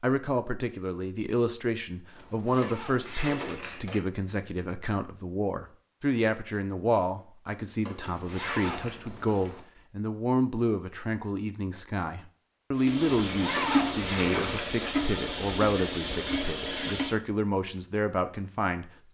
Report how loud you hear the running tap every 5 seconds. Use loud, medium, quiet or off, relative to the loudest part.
off, off, loud, loud.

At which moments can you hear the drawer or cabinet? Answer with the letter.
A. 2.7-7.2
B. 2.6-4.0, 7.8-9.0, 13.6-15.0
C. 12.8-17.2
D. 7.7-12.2
B.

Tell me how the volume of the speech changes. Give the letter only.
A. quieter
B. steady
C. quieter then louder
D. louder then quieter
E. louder
B.